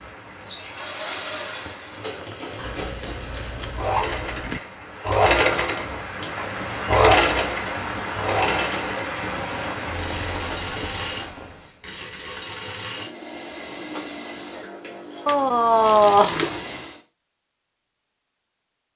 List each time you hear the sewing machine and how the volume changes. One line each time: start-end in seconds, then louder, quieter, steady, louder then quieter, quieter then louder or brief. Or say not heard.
0.0-17.0 louder then quieter.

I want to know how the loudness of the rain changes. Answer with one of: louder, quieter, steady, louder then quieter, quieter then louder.
louder.